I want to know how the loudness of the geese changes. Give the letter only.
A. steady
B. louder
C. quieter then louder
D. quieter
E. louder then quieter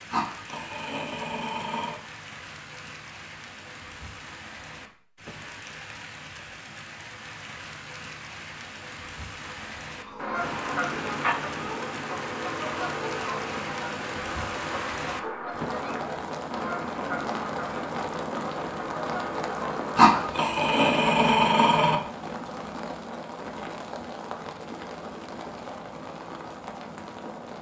A.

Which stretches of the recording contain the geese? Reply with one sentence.
The geese can be heard from 10.2 to 20.1 s.